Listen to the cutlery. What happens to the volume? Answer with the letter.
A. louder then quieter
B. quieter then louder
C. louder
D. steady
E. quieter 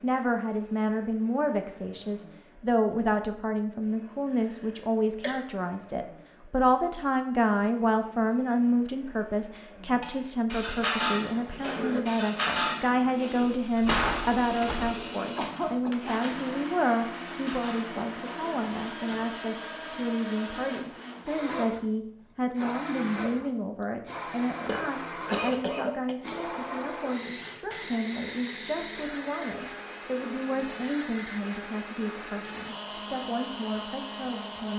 E.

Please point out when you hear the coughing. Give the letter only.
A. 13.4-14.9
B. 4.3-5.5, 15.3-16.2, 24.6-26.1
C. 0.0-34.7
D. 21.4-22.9
B.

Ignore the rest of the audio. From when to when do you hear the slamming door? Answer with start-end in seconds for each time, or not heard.
13.4-14.9.